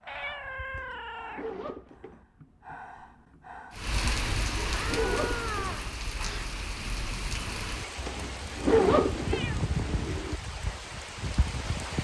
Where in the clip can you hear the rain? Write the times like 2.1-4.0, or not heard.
3.8-11.9.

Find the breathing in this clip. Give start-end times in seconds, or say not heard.
0.0-3.8.